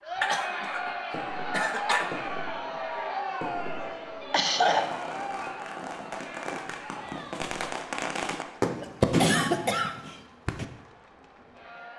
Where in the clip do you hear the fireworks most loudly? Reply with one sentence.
The loudest moment of the fireworks is at 9 seconds.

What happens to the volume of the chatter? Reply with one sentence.
The loudness of the chatter goes down.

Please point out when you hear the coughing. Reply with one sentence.
You can hear the coughing from 0.2 to 0.9 s, from 1.5 to 2.1 s, from 4.3 to 4.9 s and from 8.8 to 10.2 s.